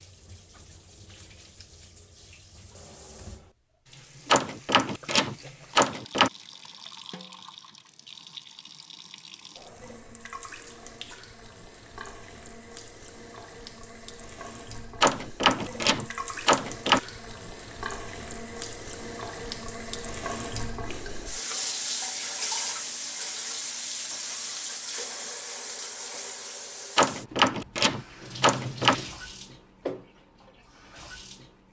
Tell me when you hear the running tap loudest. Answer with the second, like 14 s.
22 s.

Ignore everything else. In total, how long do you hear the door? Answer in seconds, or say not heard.
6 s.